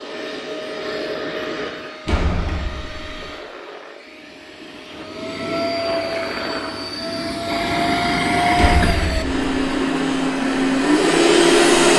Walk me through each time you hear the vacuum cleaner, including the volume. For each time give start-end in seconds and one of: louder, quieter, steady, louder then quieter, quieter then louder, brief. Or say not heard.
0.0-11.9 quieter then louder.